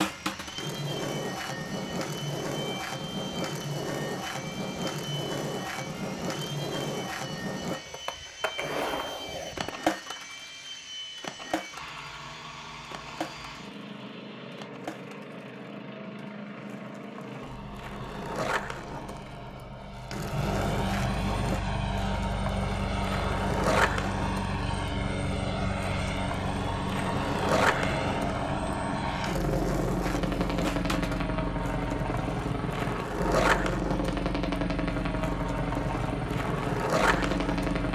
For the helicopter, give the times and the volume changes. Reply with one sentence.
The helicopter can be heard from 0.0 to 37.9 s, getting louder.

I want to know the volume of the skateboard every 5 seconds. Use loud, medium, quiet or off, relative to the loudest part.
loud, loud, medium, medium, loud, loud, loud, loud.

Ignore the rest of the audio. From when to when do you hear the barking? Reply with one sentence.
The barking can't be heard in this clip.